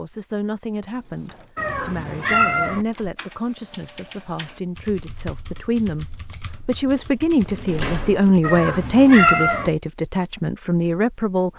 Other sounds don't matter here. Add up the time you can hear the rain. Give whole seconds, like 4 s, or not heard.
not heard.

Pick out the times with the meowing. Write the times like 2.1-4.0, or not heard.
1.6-2.9, 8.4-9.7.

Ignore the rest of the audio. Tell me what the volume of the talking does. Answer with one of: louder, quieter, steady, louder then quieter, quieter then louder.
louder.